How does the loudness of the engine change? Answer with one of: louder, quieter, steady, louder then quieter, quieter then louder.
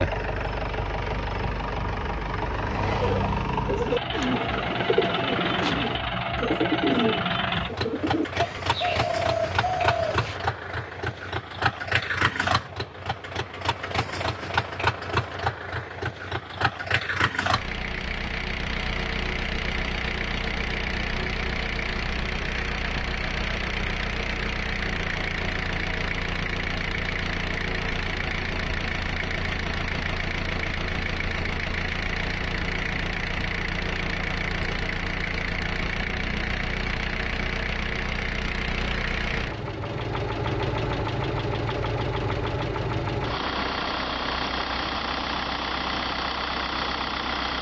steady.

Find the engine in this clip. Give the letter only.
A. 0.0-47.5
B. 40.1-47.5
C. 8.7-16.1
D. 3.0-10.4
A.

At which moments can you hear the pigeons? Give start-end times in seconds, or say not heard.
3.0-10.4.